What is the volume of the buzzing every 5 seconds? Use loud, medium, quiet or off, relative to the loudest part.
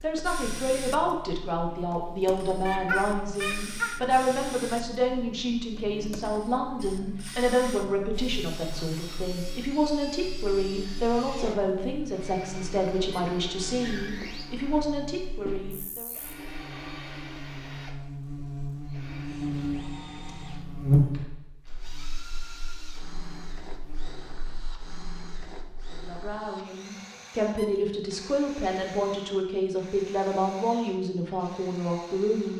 quiet, quiet, quiet, medium, loud, off, off.